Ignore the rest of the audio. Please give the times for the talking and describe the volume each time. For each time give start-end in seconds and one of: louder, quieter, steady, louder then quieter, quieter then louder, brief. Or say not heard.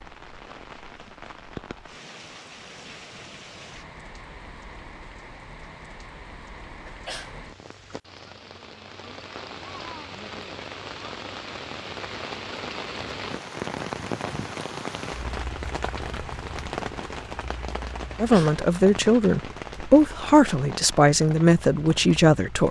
18.1-22.6 steady.